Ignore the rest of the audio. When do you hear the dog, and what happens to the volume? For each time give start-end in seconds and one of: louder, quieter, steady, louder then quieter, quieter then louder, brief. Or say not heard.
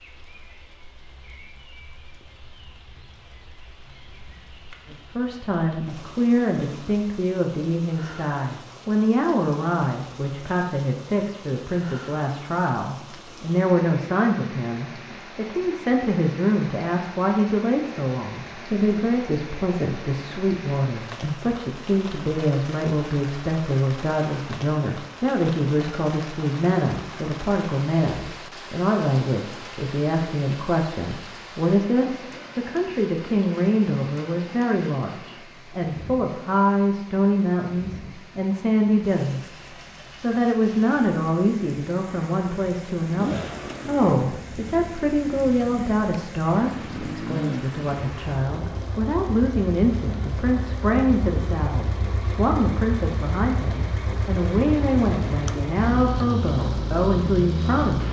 not heard.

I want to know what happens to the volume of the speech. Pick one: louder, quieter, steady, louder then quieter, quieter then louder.
steady.